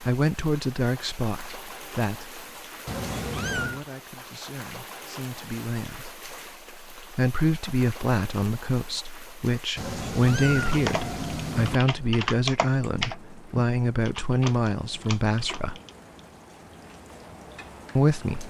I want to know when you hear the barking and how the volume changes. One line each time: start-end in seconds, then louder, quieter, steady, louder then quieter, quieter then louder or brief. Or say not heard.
not heard.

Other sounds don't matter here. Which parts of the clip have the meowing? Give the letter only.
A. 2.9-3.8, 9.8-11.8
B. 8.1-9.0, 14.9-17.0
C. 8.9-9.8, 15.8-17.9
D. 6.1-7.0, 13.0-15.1
A.